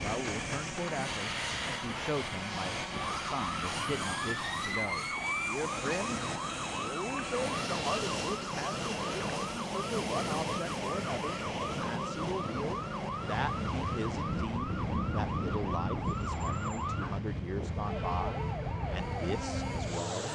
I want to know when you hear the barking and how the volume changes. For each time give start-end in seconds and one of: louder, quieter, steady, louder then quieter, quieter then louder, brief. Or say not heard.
not heard.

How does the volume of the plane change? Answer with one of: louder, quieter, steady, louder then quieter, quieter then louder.
steady.